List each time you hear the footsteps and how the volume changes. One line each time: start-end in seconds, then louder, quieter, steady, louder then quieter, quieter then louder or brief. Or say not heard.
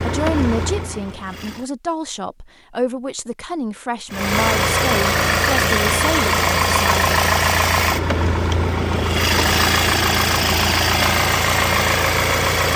not heard.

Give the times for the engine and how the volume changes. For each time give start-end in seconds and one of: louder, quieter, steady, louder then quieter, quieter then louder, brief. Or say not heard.
0.0-1.7 brief
4.1-12.7 steady.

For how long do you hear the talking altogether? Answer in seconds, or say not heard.
7 s.